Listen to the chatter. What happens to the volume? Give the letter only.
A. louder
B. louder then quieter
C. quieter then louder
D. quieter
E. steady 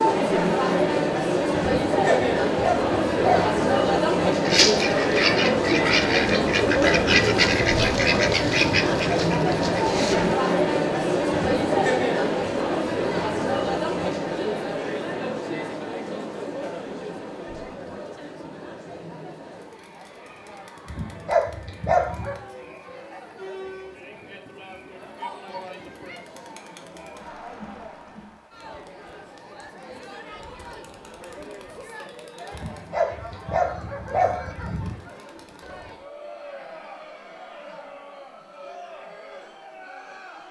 D.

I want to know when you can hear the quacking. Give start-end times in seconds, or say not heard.
4.5-10.3.